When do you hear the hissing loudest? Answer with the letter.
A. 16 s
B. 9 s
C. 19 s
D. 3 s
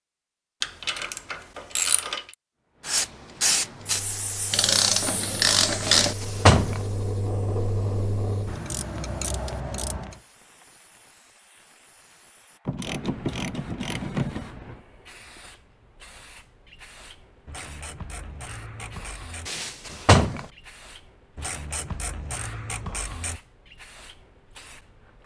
D.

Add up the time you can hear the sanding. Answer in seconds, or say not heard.
not heard.